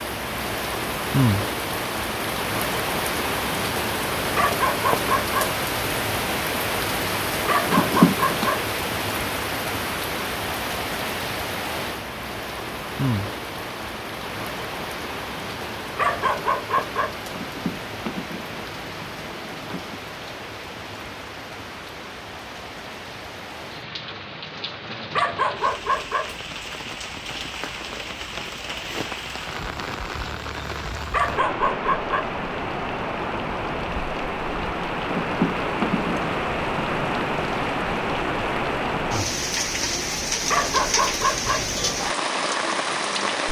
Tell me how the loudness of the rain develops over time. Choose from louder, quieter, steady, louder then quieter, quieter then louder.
quieter then louder.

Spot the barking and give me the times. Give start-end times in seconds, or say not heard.
4.3-5.5, 7.5-8.7, 15.9-17.2, 25.1-26.4, 31.1-32.4, 40.5-41.7.